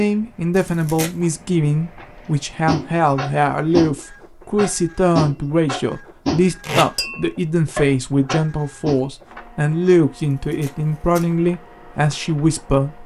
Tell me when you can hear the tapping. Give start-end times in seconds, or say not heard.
2.6-9.0.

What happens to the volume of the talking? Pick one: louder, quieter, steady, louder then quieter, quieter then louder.
steady.